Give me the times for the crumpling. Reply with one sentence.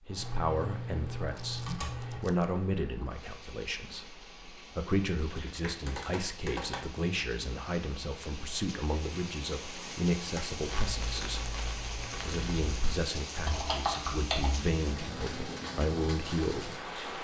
You can hear the crumpling from 1.2 to 2.5 s and from 10.7 to 13.0 s.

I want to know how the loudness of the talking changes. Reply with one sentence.
The volume of the talking stays about the same.